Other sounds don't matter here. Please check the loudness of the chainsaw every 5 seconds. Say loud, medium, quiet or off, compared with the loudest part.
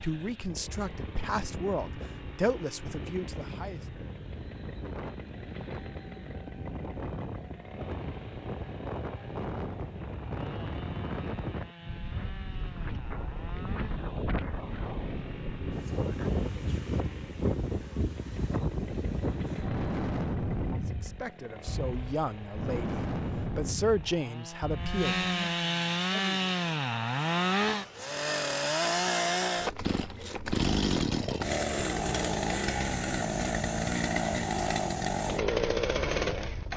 quiet, quiet, quiet, quiet, quiet, loud, loud, loud.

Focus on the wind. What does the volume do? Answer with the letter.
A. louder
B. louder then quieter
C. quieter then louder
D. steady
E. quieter
A.